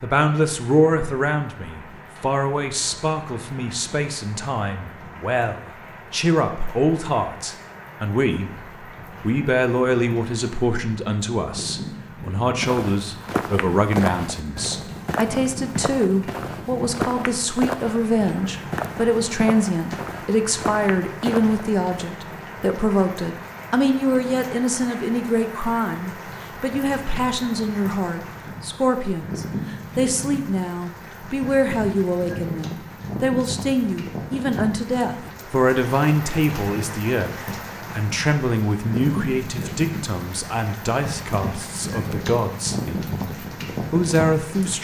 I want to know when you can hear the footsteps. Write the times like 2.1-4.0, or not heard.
12.6-22.1.